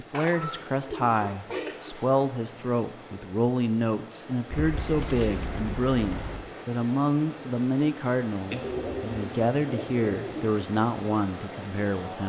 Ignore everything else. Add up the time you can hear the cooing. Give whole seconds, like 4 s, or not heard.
6 s.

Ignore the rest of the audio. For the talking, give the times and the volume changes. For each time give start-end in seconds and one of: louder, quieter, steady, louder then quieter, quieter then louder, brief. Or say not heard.
0.0-12.2 steady.